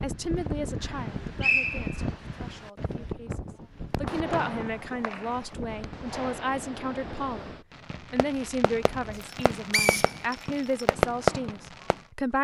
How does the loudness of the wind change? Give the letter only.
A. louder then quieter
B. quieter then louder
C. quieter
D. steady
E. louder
C.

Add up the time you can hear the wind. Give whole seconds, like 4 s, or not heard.
9 s.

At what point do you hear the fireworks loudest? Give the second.
11 s.